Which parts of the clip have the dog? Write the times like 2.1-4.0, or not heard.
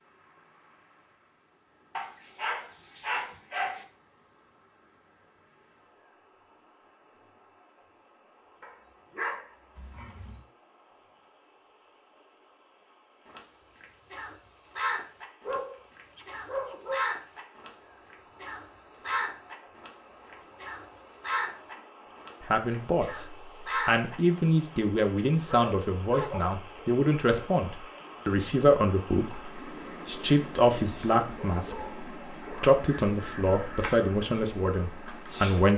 1.9-3.9, 8.6-10.4, 15.4-17.0, 25.4-26.4, 31.4-32.8.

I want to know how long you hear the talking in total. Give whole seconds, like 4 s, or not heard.
13 s.